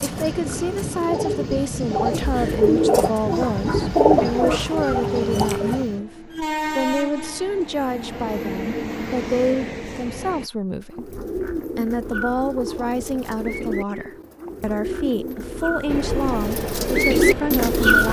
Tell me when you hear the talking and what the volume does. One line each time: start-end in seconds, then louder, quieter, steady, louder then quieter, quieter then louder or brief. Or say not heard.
0.0-18.0 steady.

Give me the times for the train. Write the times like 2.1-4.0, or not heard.
0.0-10.5, 15.8-17.8.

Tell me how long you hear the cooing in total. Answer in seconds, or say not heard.
13 s.